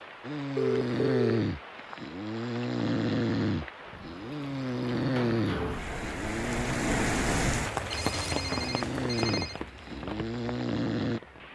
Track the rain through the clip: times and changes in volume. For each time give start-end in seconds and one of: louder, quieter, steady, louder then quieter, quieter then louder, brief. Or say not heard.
0.0-11.5 louder then quieter.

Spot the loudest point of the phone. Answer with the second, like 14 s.
1 s.